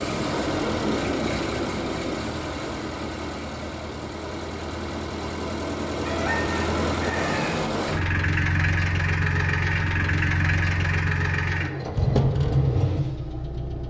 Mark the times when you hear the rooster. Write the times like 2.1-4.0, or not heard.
6.0-7.5.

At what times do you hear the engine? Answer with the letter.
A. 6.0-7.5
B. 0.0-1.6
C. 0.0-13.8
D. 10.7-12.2
C.